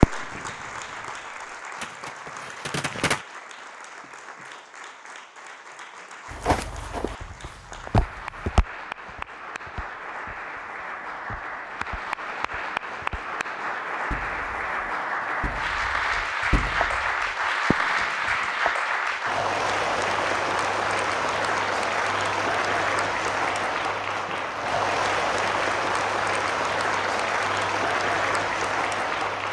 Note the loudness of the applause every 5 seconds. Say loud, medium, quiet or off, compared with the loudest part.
quiet, quiet, medium, loud, loud, loud.